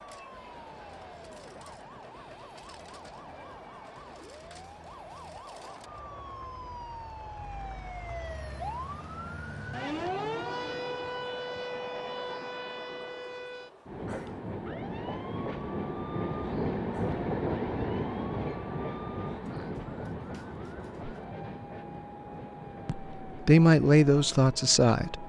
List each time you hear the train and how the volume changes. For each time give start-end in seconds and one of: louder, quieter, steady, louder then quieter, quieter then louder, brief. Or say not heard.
0.0-25.2 louder then quieter.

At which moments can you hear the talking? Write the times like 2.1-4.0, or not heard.
22.9-25.2.